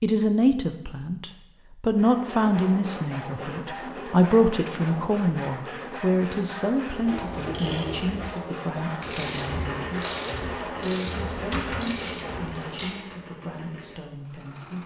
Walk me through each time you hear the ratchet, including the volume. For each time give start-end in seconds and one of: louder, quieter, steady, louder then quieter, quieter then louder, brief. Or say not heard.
7.0-12.9 steady.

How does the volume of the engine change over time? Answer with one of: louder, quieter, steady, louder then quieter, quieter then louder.
quieter.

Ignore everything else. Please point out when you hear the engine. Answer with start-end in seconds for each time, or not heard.
9.2-14.8.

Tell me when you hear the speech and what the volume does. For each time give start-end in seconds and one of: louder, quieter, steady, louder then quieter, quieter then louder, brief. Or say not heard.
0.0-14.8 quieter.